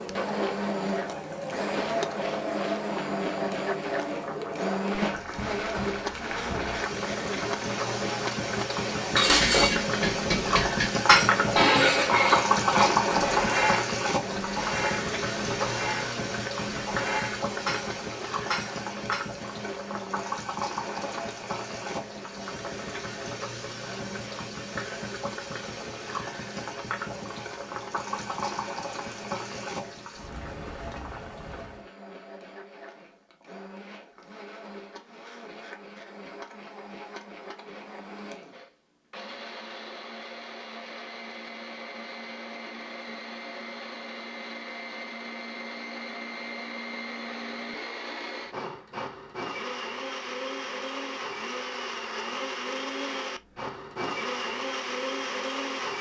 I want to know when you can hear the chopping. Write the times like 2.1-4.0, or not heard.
not heard.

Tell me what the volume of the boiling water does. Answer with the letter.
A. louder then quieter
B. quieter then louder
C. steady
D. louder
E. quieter
A.